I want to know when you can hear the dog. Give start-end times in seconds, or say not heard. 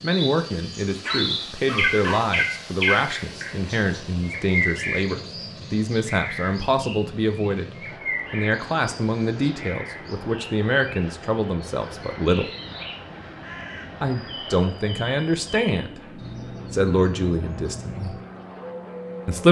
1.0-2.3.